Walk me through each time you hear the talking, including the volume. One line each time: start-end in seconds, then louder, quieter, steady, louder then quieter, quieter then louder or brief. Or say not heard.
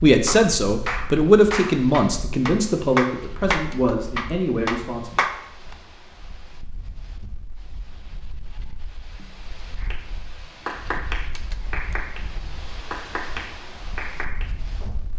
0.0-5.7 quieter.